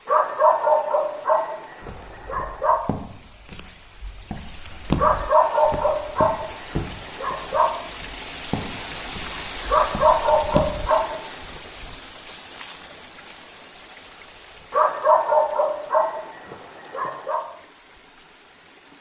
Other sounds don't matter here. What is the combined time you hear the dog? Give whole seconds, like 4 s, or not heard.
10 s.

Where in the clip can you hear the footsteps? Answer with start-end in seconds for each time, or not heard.
1.8-10.9.